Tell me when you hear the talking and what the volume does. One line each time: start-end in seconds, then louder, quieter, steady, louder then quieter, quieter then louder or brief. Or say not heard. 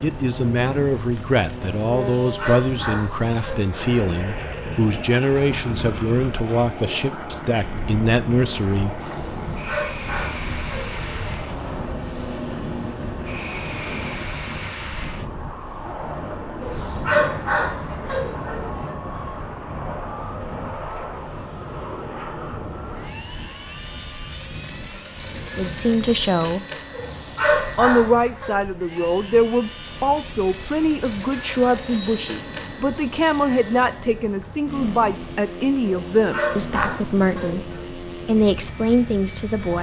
0.0-9.2 steady
25.6-26.6 brief
27.8-39.7 steady.